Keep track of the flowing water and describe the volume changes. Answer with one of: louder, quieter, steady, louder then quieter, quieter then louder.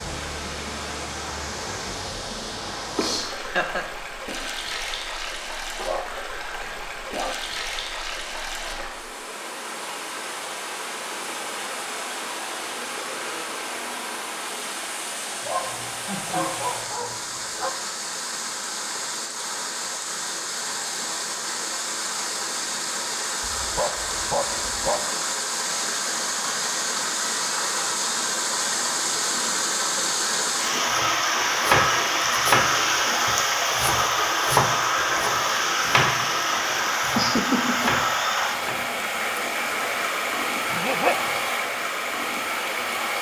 louder.